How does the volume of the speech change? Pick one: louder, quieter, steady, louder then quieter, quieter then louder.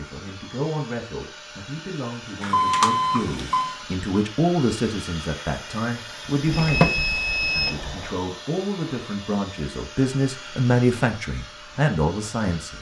louder.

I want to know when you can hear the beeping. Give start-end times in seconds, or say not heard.
2.4-3.8, 6.5-8.1.